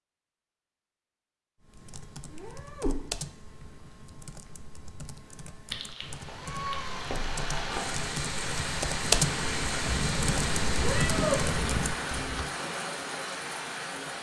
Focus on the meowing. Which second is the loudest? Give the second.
11 s.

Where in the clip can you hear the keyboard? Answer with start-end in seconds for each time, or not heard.
1.6-12.4.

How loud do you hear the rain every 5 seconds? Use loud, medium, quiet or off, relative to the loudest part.
off, loud, loud.